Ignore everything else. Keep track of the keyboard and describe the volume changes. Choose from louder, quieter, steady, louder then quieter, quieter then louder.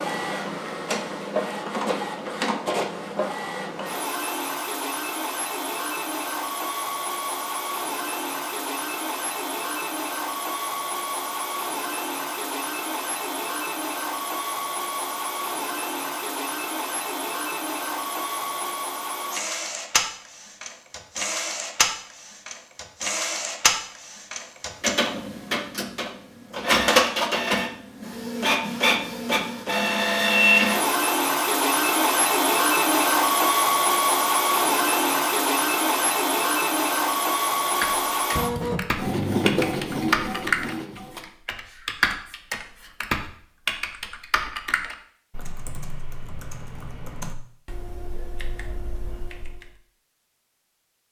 quieter.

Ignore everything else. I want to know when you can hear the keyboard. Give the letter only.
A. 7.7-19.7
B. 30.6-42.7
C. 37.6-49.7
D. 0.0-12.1
C.